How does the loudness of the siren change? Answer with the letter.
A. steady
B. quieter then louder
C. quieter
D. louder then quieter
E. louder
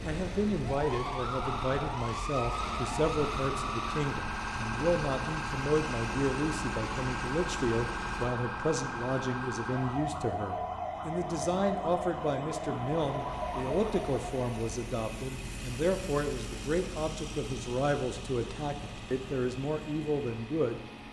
A.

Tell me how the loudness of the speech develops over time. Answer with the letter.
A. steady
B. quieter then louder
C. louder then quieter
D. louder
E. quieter
A.